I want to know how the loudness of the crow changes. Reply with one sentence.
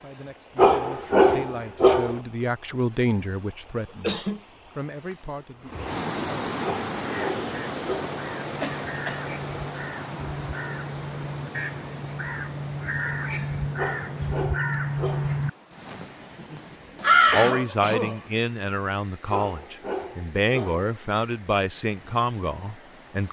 The volume of the crow goes up.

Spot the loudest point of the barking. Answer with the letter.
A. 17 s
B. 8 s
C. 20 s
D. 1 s
D.